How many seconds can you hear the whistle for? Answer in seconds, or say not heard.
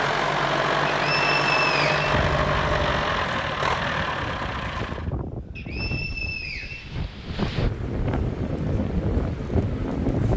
3 s.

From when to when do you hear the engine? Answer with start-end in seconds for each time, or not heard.
0.0-5.1.